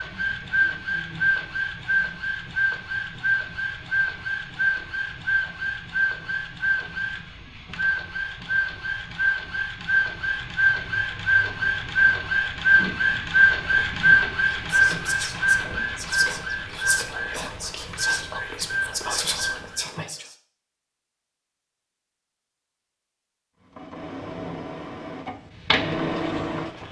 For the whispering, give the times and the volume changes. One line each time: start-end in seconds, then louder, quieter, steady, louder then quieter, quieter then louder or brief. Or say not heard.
14.6-20.4 louder.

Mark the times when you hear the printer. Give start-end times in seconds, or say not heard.
0.0-20.1, 23.8-26.8.